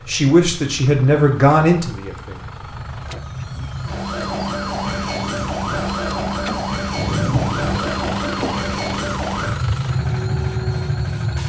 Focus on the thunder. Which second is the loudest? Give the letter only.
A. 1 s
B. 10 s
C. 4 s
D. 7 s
D.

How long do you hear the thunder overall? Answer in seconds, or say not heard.
2 s.